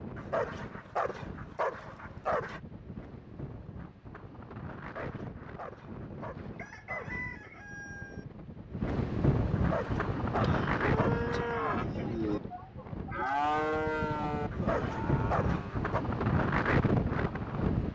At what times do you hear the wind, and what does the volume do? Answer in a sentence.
You can hear the wind from 0.0 to 17.8 s, getting louder.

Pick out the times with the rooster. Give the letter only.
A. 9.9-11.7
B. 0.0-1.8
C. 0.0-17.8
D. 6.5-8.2
D.